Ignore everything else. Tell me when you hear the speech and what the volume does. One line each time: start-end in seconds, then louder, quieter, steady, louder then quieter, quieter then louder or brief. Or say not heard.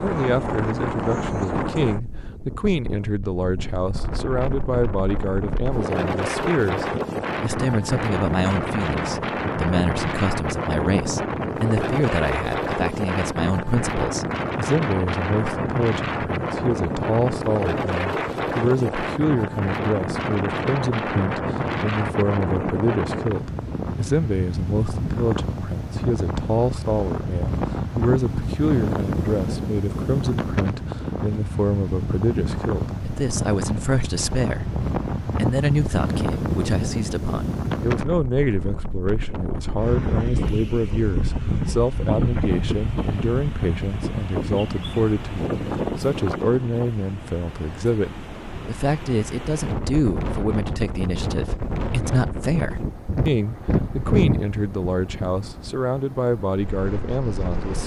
0.0-57.8 steady.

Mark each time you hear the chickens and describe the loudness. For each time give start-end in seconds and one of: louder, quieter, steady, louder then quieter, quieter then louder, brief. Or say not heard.
not heard.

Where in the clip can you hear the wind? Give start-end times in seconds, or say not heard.
0.0-57.8.